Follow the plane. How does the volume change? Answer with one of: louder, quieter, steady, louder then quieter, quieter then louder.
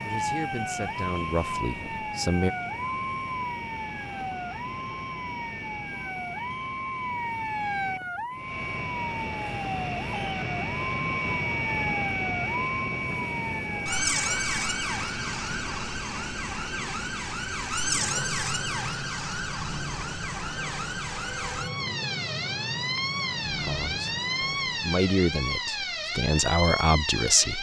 louder then quieter.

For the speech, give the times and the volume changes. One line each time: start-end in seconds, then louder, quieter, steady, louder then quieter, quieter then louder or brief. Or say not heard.
0.0-2.5 brief
23.4-27.5 louder.